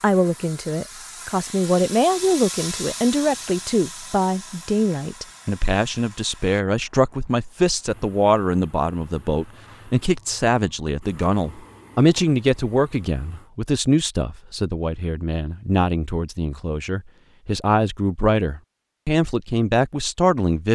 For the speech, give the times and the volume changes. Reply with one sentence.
You can hear the speech from 0.0 to 20.7 s, at a steady volume.